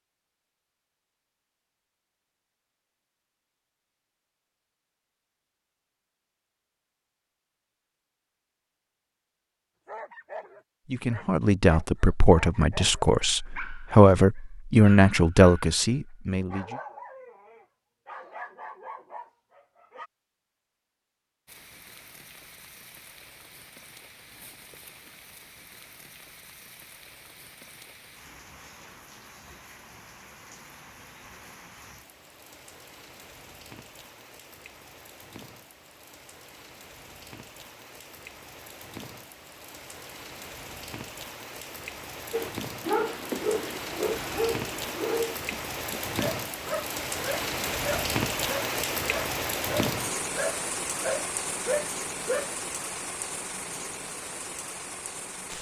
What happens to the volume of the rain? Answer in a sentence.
The loudness of the rain goes up.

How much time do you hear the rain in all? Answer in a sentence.
The rain can be heard for 34 seconds in total.